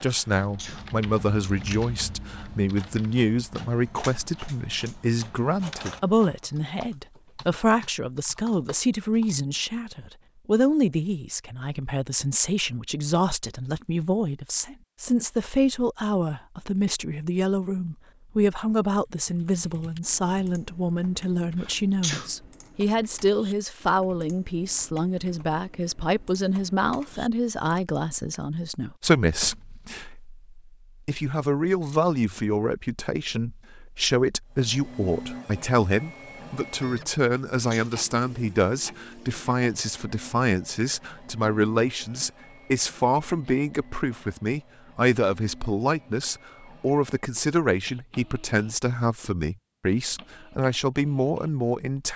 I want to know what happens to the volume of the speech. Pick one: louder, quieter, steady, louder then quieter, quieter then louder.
steady.